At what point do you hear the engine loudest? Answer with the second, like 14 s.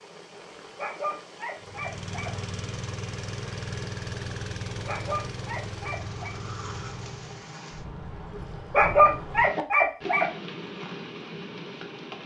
4 s.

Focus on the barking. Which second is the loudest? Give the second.
9 s.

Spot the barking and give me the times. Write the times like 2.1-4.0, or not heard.
0.8-2.3, 4.8-6.3, 8.7-10.2.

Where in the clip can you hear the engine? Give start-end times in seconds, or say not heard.
1.6-7.5.